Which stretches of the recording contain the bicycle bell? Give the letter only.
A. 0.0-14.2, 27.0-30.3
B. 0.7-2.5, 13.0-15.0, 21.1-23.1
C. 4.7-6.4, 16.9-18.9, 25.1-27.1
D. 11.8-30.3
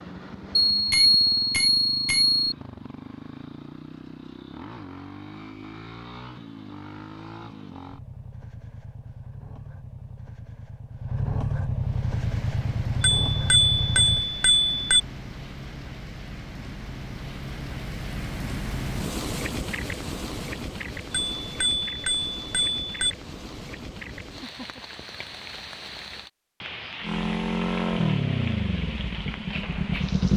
B.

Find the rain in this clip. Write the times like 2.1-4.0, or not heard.
11.8-30.3.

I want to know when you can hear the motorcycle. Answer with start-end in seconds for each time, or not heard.
0.0-14.2, 27.0-30.3.